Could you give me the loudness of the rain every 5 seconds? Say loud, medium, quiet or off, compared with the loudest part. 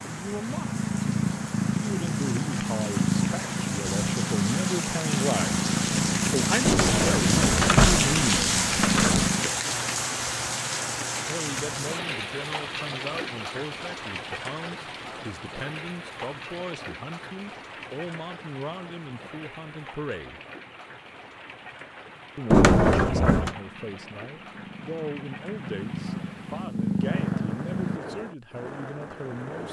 medium, loud, medium, quiet, quiet, quiet.